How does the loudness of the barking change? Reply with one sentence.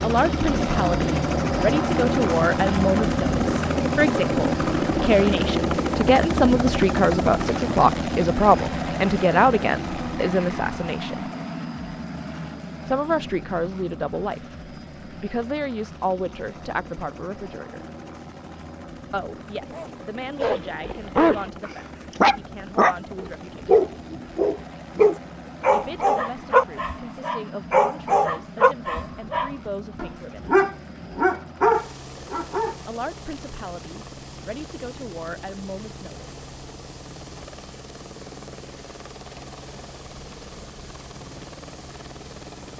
The loudness of the barking stays about the same.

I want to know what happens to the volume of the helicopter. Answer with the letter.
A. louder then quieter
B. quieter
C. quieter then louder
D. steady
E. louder
B.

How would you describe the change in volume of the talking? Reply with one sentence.
The loudness of the talking goes down.